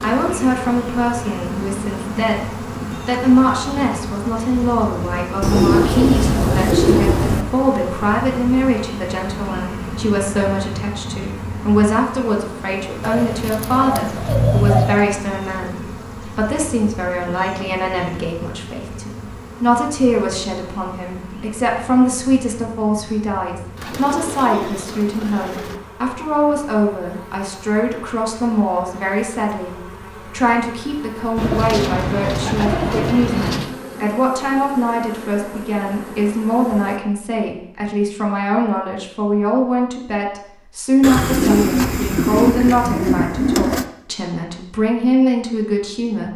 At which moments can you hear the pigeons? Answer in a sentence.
The pigeons can be heard from 5.4 to 7.5 s, from 13.0 to 15.1 s, from 23.8 to 25.8 s, from 31.4 to 33.8 s and from 41.0 to 43.9 s.